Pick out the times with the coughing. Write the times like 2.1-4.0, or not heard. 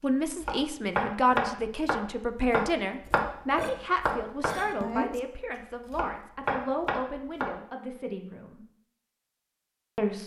not heard.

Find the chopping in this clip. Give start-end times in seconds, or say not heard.
0.4-5.2, 5.9-7.5.